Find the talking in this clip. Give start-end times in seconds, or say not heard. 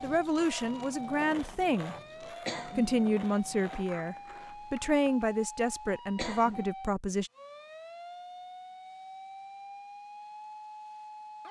0.0-1.9, 2.8-7.3.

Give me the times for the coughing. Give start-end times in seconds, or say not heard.
2.5-3.0, 6.2-6.8.